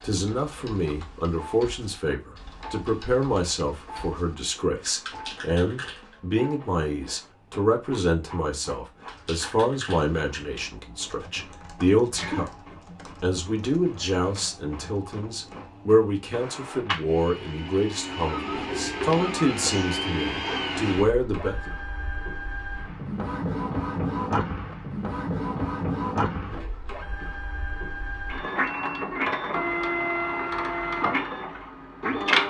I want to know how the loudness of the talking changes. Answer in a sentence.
The volume of the talking stays about the same.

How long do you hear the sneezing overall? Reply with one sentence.
You can hear the sneezing for 2 seconds altogether.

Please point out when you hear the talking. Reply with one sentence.
You can hear the talking from 0.0 to 12.5 s and from 13.2 to 21.6 s.